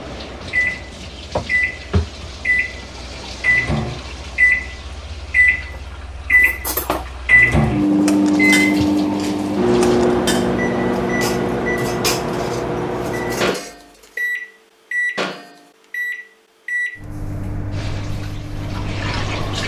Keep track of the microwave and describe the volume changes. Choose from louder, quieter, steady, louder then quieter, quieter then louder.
quieter.